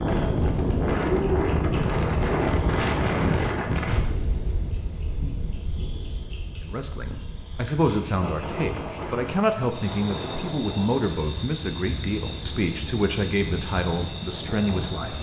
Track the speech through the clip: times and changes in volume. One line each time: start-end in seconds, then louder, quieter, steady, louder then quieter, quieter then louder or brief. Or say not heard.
6.6-15.1 steady.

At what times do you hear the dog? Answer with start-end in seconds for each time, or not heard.
not heard.